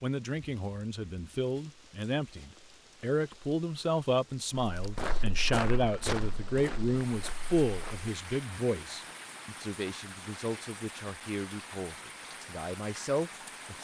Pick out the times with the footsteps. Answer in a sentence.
You can hear the footsteps from 4.7 to 8.1 s.